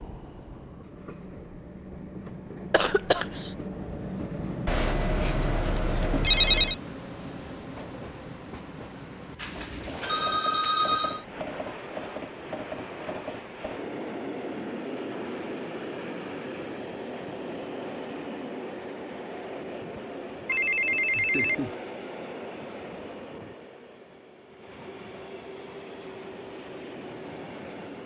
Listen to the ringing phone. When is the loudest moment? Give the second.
6 s.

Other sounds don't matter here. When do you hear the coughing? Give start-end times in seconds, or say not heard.
2.7-3.5.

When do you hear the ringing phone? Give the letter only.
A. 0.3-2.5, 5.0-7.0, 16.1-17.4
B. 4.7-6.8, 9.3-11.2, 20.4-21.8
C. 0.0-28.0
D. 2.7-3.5
B.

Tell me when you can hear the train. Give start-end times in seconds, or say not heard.
0.0-28.0.